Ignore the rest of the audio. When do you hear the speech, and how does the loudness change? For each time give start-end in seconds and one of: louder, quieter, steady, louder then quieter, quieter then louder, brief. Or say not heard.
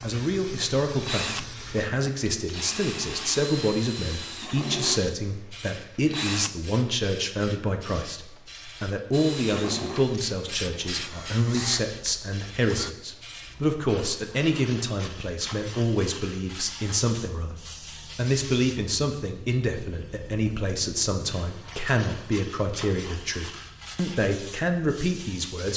0.0-25.7 steady.